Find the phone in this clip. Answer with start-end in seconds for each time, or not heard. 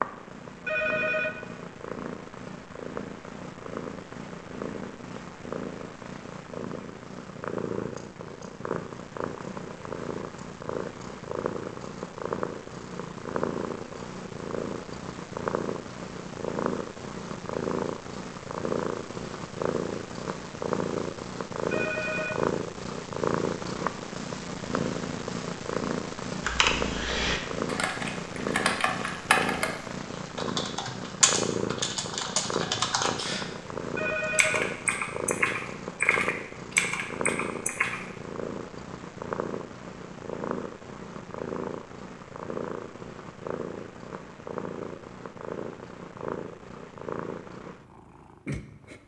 0.7-1.4, 21.7-22.4, 34.0-34.7.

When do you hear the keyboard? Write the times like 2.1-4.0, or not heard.
26.4-29.7, 30.4-33.5, 34.3-38.0.